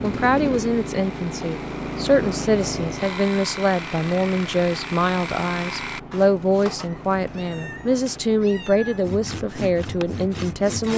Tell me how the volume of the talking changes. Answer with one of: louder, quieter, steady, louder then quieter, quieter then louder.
steady.